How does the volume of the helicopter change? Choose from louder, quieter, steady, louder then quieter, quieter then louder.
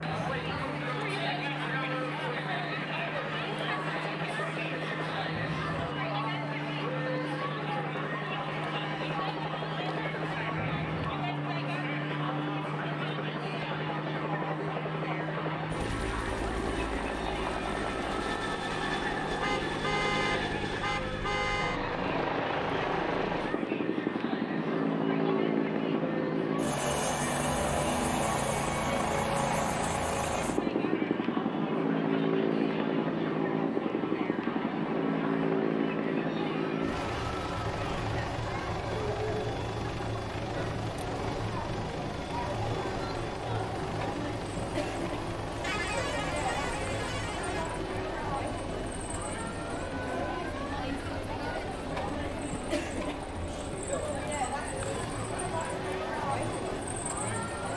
louder then quieter.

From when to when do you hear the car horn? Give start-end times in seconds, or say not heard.
19.4-21.8, 45.6-47.6.